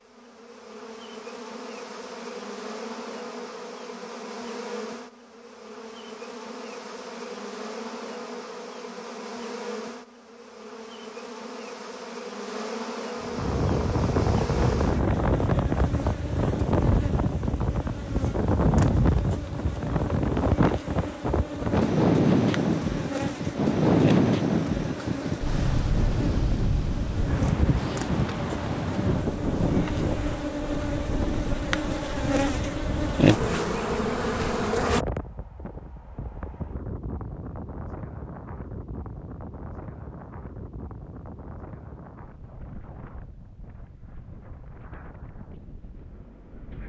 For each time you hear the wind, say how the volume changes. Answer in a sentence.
The wind can be heard from 13.2 to 46.8 s, getting quieter.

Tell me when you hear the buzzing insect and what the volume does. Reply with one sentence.
You can hear the buzzing insect from 0.0 to 35.0 s, getting louder.